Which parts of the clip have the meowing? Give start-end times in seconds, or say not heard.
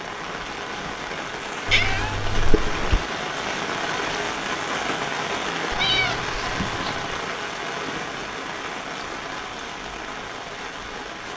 1.6-3.0, 5.7-7.2.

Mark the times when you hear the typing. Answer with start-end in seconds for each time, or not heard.
not heard.